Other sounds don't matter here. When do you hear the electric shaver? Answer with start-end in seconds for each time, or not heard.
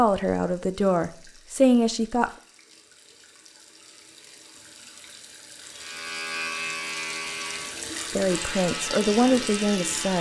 5.8-10.1.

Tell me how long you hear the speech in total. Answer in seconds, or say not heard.
4 s.